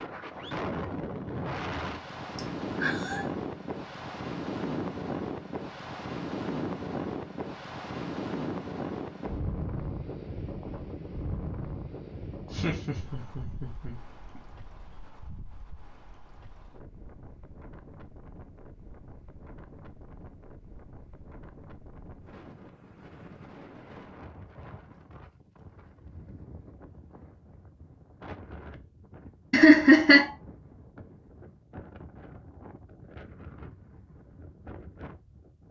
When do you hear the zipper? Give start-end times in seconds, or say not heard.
not heard.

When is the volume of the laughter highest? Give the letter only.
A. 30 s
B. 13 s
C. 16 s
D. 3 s
A.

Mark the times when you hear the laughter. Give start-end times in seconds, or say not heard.
2.4-3.2, 12.5-14.4, 29.5-30.3.